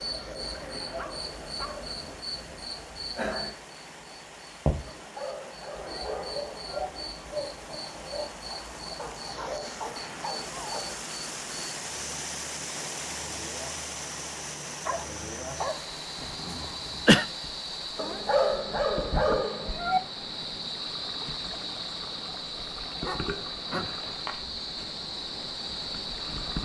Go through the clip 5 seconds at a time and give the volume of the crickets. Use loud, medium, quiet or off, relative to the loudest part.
loud, loud, medium, loud, loud, loud.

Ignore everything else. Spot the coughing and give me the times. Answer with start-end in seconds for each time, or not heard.
16.2-17.2.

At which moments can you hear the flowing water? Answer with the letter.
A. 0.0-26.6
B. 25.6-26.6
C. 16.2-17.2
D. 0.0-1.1
A.